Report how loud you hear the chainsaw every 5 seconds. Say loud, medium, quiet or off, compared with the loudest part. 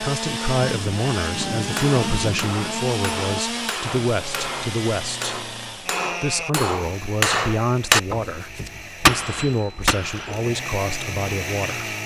loud, medium, loud.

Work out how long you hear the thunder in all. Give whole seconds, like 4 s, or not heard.
3 s.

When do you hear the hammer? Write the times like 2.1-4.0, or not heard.
1.6-10.7.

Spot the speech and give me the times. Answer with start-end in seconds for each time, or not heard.
0.0-5.3, 6.2-11.9.